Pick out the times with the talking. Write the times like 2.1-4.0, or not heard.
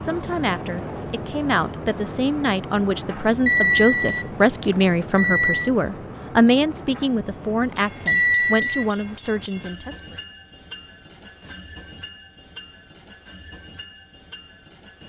0.0-10.2.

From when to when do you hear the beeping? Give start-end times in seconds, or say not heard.
3.5-5.7, 8.1-9.3.